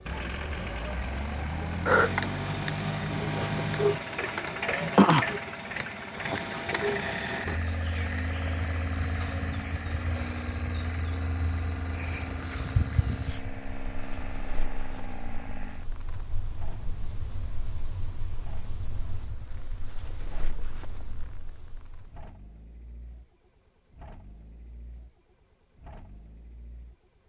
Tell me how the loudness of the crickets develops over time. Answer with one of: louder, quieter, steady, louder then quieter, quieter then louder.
quieter.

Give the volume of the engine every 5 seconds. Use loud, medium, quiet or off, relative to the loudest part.
loud, loud, medium, quiet, quiet, quiet.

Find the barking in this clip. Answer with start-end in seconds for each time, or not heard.
not heard.